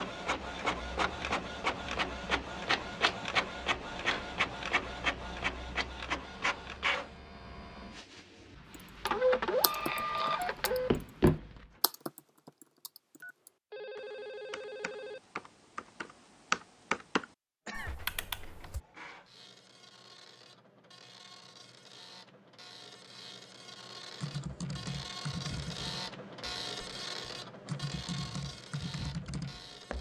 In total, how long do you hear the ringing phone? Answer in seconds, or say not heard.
2 s.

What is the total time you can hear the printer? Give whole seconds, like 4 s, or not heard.
24 s.